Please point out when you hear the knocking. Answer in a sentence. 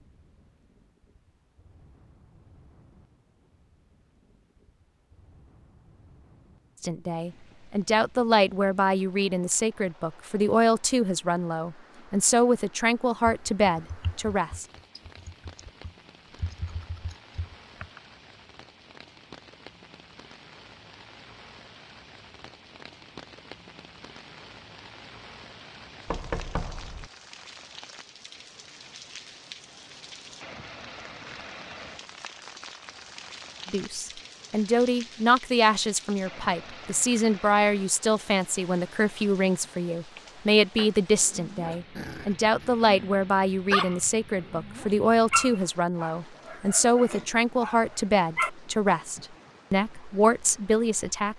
The knocking can be heard from 26.1 to 27.1 s.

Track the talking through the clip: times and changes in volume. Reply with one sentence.
You can hear the talking from 6.8 to 14.7 s, at a steady volume; and from 33.7 to 51.3 s, at a steady volume.